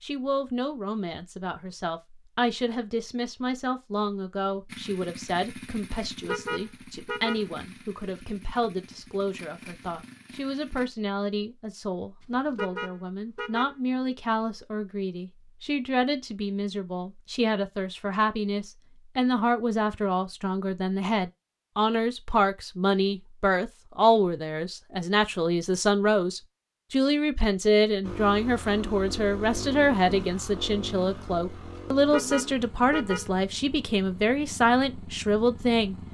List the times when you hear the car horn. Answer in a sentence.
The car horn can be heard from 6.2 to 7.5 s, from 12.6 to 13.8 s and from 32.1 to 33.3 s.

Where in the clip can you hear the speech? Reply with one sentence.
The speech can be heard from 0.0 to 36.0 s.